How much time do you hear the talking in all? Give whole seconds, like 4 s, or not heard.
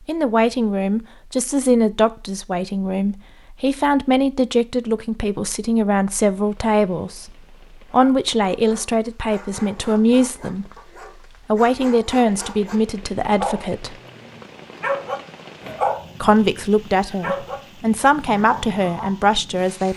17 s.